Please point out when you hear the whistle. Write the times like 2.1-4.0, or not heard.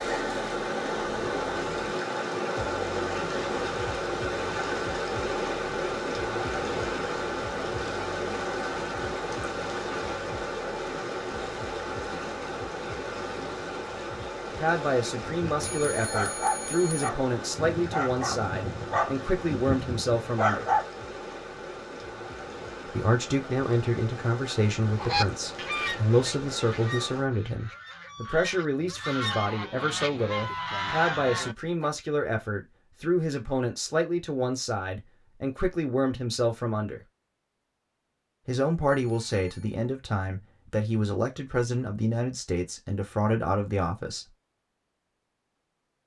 not heard.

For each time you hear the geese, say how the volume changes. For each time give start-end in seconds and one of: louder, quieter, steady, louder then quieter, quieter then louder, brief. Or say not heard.
24.9-31.9 quieter then louder.